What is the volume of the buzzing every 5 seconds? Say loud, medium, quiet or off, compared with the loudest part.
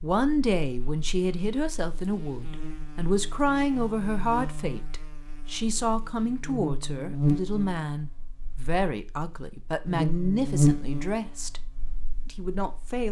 quiet, loud, loud.